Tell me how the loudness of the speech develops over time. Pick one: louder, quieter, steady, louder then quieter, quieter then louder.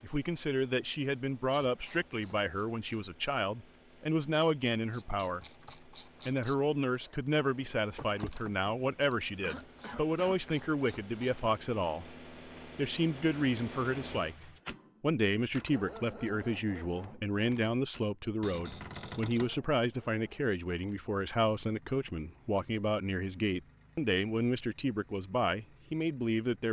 steady.